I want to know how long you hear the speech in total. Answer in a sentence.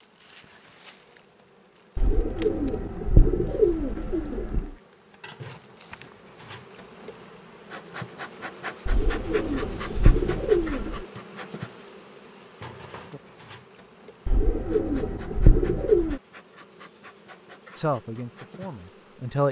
The speech can be heard for 2 seconds in total.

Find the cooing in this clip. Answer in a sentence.
The cooing can be heard from 1.9 to 4.8 s, from 8.8 to 11.1 s and from 14.2 to 16.2 s.